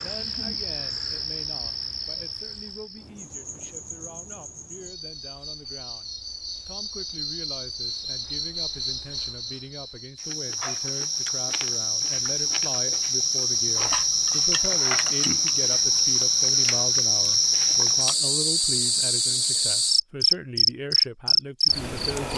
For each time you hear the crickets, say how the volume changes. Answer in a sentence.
The crickets can be heard from 0.0 to 22.3 s, getting louder.